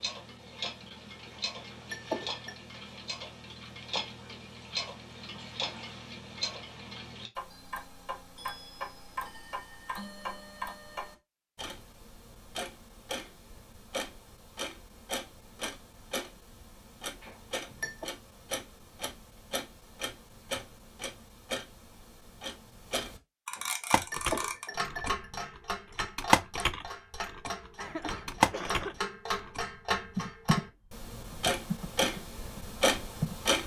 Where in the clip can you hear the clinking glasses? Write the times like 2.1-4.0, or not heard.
1.3-2.6, 17.2-18.1, 23.5-25.2.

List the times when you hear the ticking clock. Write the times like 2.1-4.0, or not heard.
0.0-33.6.